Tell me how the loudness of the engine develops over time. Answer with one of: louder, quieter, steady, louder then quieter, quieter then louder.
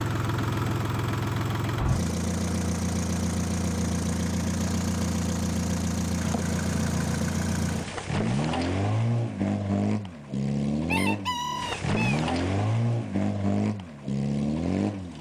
steady.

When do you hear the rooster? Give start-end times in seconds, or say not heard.
10.4-12.2.